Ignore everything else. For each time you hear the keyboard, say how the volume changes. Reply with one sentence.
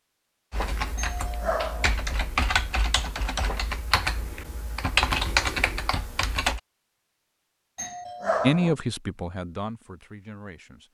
You can hear the keyboard from 0.5 to 6.6 s, getting louder.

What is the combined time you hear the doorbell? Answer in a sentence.
The doorbell can be heard for 2 seconds in total.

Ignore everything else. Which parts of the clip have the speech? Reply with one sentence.
The speech can be heard from 8.4 to 10.8 s.